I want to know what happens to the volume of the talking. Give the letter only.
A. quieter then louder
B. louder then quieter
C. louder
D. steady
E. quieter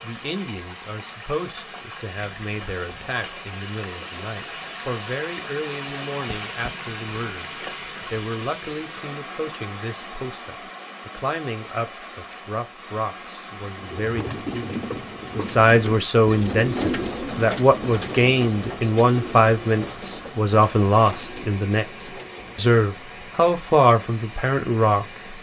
C.